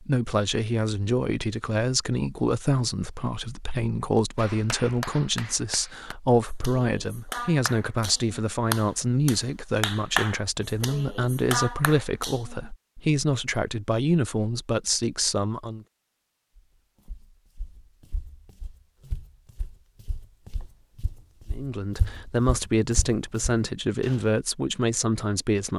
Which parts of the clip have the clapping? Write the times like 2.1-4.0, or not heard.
4.3-12.7.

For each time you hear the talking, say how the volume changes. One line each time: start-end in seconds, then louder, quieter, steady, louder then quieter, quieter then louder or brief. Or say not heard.
0.0-15.8 steady
21.5-25.7 steady.